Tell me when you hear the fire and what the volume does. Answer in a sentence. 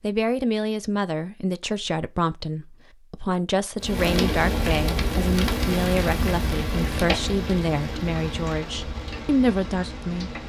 The fire can be heard from 3.8 to 10.4 s, getting quieter.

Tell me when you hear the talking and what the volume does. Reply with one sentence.
You can hear the talking from 0.0 to 10.3 s, at a steady volume.